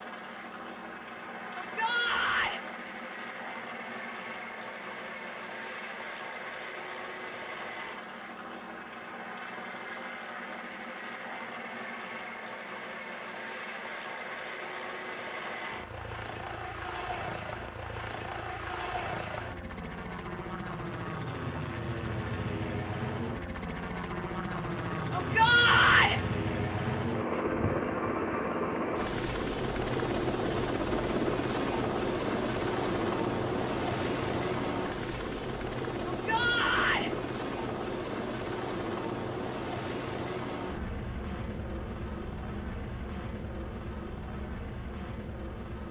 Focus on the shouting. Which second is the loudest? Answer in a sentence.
The volume of the shouting peaks at 26 seconds.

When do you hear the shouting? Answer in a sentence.
You can hear the shouting from 1.5 to 2.6 s, from 25.1 to 26.2 s and from 36.0 to 37.1 s.